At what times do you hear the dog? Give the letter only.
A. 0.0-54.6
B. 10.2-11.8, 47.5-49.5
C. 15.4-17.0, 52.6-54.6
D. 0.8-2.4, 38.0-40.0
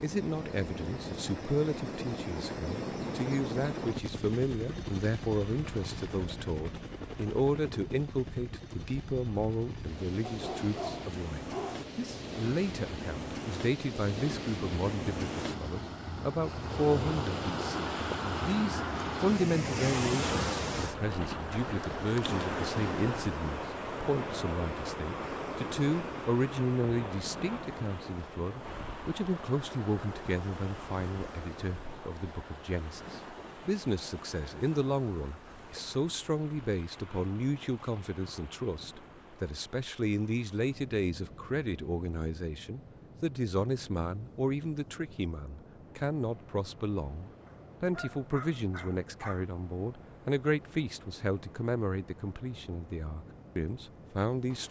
B.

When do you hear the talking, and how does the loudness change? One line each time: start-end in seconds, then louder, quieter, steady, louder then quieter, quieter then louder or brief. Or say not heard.
0.0-54.6 steady.